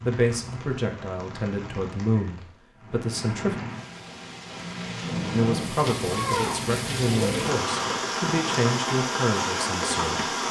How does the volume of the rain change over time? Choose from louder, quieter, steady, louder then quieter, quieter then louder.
louder.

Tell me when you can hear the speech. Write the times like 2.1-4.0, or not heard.
0.0-3.6, 5.3-10.2.